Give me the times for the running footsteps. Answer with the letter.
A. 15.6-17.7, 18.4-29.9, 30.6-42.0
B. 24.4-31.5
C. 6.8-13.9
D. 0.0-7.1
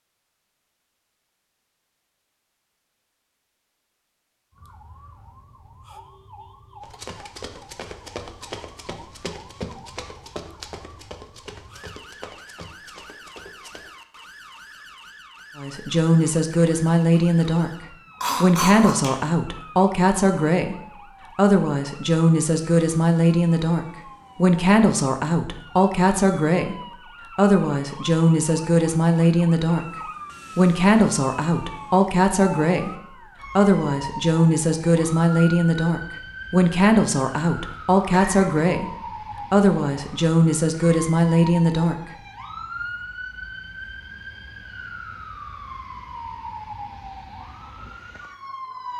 C.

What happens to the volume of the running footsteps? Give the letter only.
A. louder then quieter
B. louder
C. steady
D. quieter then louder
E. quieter
E.